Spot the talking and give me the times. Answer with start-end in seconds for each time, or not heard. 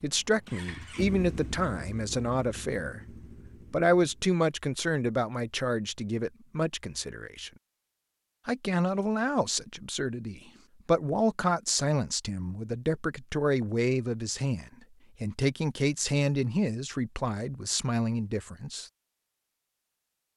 0.0-7.5, 8.4-18.9.